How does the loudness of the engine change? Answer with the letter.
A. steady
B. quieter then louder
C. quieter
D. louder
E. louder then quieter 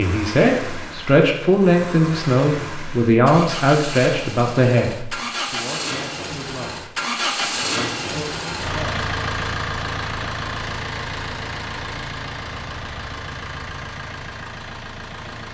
E.